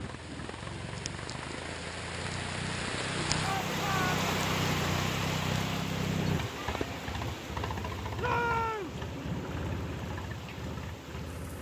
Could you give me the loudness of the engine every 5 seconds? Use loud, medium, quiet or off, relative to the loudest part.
loud, loud, medium.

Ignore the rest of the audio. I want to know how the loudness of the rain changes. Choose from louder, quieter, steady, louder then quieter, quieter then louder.
louder then quieter.